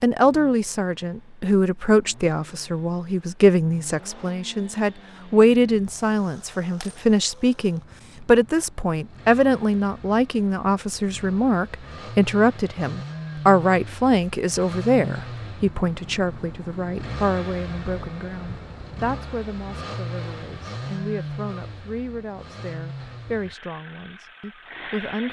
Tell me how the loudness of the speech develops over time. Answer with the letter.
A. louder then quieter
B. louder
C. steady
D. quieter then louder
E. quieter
E.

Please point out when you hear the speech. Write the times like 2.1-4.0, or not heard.
0.0-25.2.